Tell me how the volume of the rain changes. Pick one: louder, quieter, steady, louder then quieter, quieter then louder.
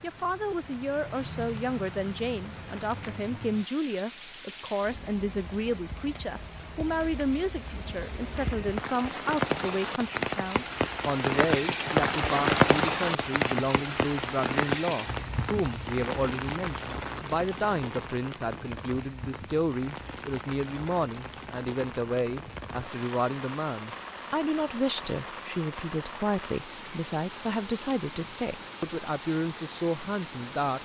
louder then quieter.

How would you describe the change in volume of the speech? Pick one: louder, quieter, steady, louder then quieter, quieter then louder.
steady.